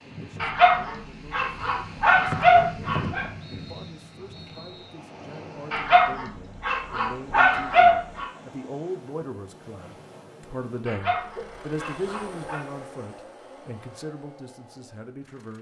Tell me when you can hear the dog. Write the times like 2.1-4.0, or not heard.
0.4-3.3, 5.7-8.2, 10.8-12.6.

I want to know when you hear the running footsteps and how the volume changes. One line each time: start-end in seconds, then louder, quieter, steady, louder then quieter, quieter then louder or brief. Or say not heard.
not heard.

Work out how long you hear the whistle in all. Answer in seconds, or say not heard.
3 s.